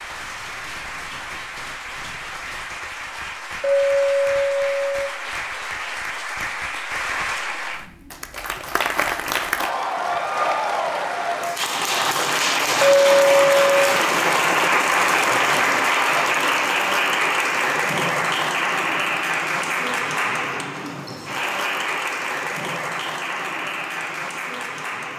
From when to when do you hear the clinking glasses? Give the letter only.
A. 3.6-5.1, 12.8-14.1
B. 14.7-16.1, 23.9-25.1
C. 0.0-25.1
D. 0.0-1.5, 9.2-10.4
A.